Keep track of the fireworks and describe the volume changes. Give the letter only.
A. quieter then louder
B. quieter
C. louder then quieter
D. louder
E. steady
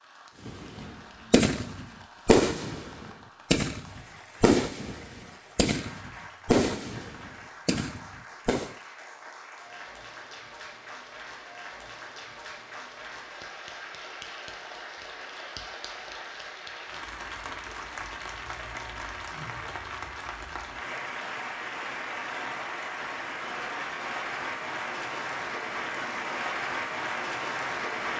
B.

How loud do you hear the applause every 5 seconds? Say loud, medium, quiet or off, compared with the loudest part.
quiet, quiet, medium, medium, loud, loud.